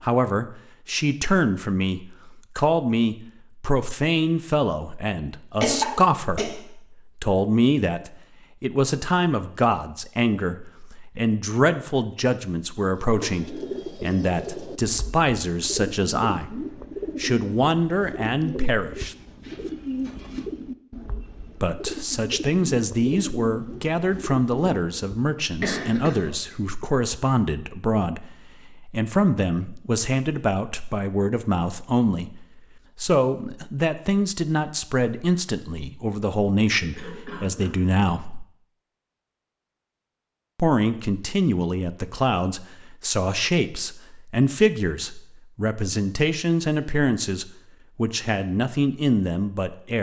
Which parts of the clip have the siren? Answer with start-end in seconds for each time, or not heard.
not heard.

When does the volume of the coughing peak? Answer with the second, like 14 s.
6 s.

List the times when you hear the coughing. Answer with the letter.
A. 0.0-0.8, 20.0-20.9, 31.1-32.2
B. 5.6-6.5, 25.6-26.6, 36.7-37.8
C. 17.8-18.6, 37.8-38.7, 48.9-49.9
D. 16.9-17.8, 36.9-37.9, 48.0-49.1
B.